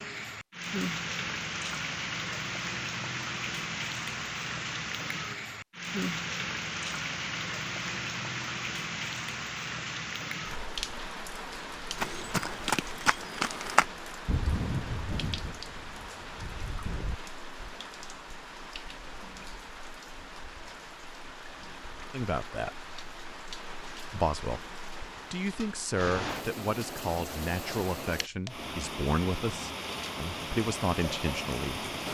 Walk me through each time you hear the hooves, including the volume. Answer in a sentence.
You can hear the hooves from 11.9 to 17.2 s, getting quieter.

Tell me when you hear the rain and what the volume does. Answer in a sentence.
The rain can be heard from 0.0 to 32.1 s, getting quieter then louder.